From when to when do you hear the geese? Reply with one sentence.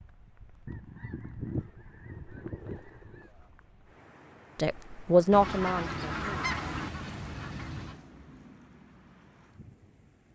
You can hear the geese from 0.7 to 3.3 s and from 5.3 to 8.0 s.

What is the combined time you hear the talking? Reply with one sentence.
You can hear the talking for 2 seconds altogether.